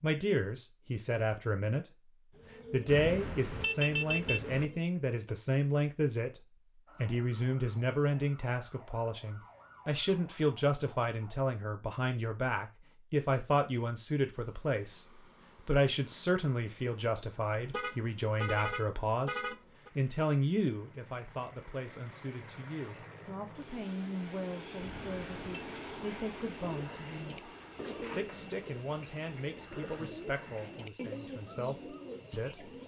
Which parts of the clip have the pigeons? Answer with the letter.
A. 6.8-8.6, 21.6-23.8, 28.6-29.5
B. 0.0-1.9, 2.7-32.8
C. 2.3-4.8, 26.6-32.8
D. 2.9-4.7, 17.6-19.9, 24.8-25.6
C.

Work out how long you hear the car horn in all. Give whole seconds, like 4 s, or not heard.
5 s.